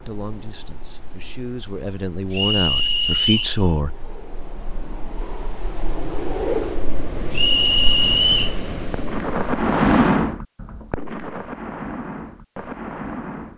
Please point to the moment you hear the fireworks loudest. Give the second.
10 s.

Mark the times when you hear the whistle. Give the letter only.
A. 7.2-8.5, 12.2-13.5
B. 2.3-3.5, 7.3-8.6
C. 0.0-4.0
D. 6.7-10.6
B.